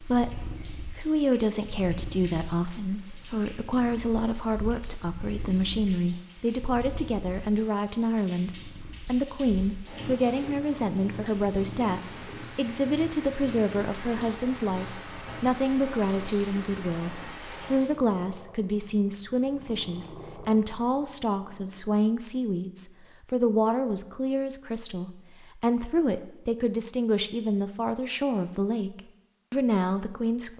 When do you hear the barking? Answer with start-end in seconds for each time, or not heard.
not heard.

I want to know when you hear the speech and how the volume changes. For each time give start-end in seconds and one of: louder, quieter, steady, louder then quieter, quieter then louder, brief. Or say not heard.
0.0-30.5 steady.